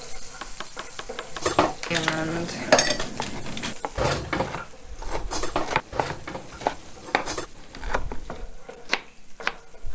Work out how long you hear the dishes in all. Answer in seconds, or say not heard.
6 s.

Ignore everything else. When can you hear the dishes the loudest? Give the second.
3 s.